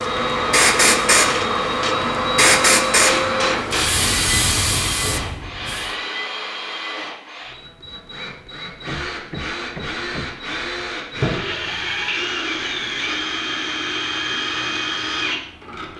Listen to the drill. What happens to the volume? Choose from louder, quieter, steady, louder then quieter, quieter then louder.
quieter then louder.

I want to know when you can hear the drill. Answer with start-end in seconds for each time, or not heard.
0.0-15.9.